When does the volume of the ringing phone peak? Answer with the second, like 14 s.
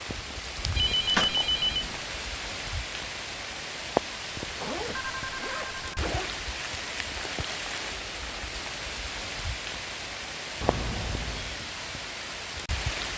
1 s.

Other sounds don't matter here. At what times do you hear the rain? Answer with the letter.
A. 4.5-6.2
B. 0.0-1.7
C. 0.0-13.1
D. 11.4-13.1
C.